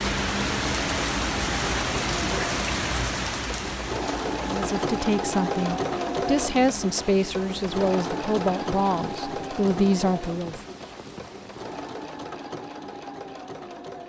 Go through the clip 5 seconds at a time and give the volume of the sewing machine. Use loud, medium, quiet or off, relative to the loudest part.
loud, loud, medium.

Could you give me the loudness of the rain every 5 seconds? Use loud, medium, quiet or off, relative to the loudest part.
loud, quiet, quiet.